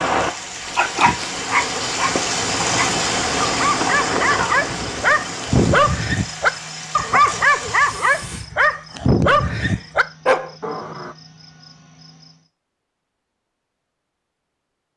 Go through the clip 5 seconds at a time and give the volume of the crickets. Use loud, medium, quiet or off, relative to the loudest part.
loud, quiet, quiet.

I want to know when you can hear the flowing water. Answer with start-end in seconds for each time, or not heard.
0.0-8.4.